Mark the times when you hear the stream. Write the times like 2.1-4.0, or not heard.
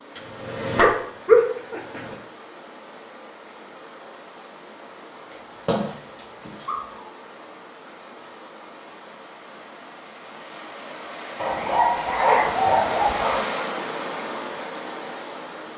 0.0-15.7.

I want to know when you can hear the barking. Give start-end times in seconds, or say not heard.
0.1-2.1, 5.7-7.0, 11.3-13.4.